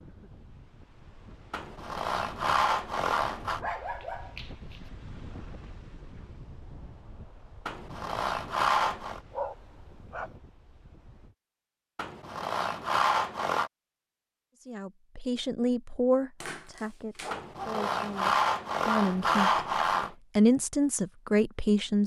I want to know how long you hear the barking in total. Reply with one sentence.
The barking can be heard for 4 seconds in total.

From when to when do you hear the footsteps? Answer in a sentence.
The footsteps can't be heard in this clip.